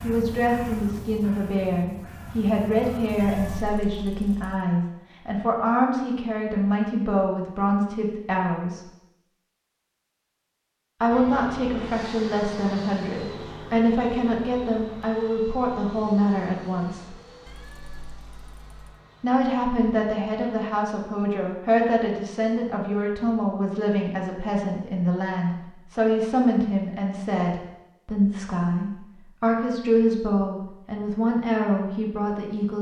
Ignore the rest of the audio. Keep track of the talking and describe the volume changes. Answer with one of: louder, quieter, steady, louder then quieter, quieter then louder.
steady.